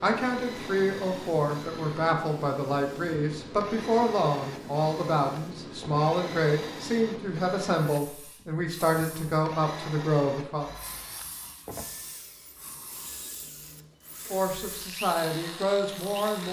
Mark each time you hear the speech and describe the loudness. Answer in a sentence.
You can hear the speech from 0.0 to 10.7 s, at a steady volume; and briefly from 14.3 to 16.4 s.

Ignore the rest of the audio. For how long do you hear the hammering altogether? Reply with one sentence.
The hammering can't be heard in this clip.